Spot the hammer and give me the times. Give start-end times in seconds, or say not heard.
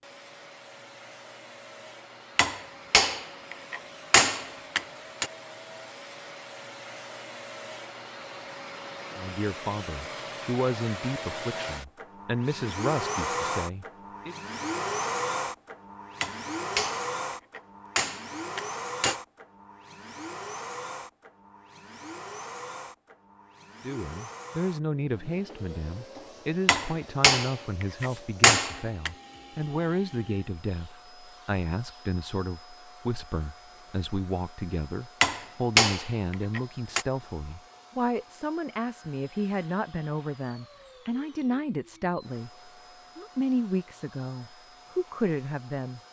2.4-5.3, 16.2-19.1, 26.6-29.1, 35.2-37.0.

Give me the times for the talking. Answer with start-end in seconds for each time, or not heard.
9.2-14.3, 23.8-46.0.